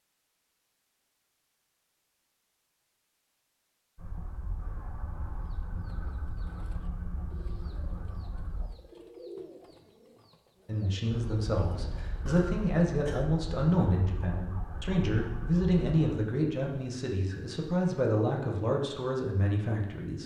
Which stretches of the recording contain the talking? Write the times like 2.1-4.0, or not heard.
10.7-20.2.